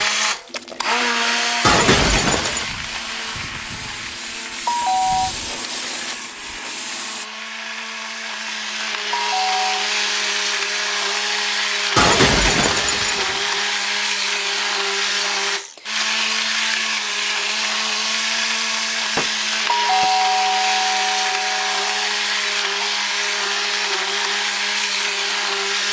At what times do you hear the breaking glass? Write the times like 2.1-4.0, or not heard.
1.6-2.6, 11.9-13.6, 19.1-20.1.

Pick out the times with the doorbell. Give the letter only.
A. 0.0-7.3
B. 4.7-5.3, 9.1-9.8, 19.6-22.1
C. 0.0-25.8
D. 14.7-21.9
B.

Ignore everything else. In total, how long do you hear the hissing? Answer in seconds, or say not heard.
7 s.